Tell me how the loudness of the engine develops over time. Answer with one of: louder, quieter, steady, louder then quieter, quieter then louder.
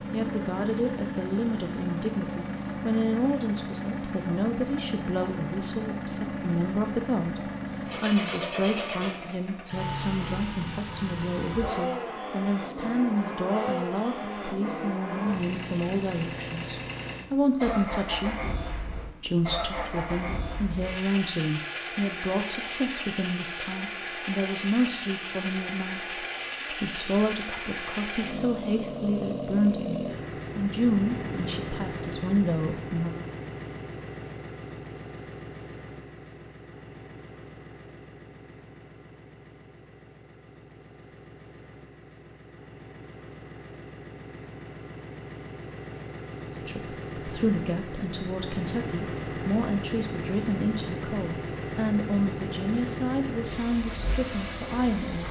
quieter then louder.